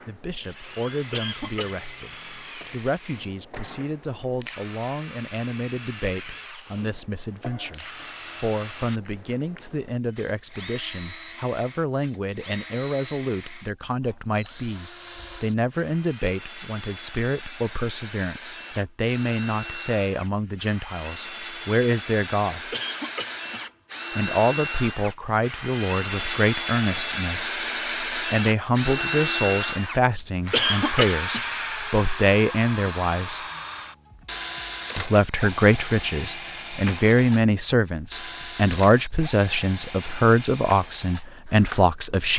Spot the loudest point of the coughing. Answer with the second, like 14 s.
31 s.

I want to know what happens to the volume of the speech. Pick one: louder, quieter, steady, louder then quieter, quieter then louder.
louder.